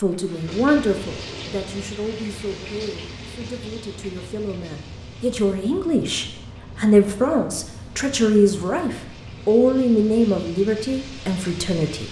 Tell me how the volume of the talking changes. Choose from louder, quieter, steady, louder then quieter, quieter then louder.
quieter then louder.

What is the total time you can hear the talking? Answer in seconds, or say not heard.
12 s.